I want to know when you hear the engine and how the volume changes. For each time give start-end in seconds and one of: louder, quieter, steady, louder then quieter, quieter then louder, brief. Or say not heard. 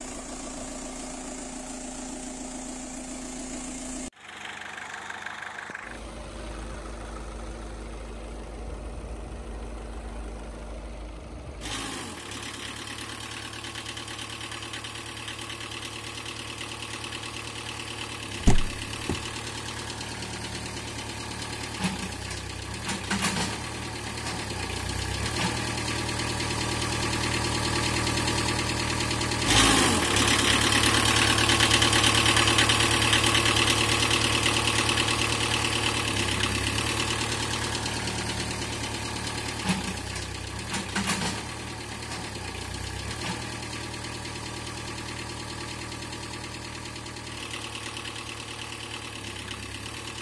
0.0-50.1 louder then quieter.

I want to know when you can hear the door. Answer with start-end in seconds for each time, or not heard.
18.4-19.1.